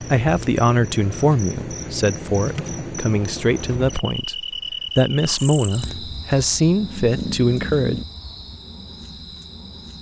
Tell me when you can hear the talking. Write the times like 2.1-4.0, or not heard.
0.1-8.0.